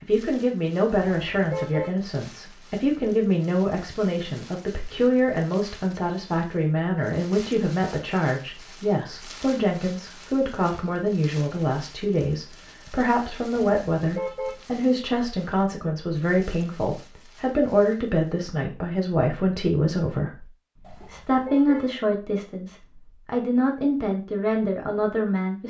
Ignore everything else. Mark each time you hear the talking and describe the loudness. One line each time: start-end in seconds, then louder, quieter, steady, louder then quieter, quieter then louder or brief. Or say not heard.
0.0-25.6 steady.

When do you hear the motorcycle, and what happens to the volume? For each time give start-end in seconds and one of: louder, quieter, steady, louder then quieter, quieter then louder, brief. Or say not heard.
not heard.